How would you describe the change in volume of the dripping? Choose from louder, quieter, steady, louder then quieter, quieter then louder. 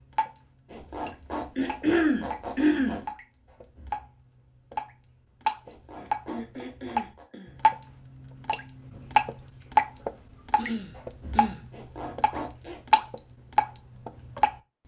louder.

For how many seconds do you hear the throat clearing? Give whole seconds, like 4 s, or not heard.
4 s.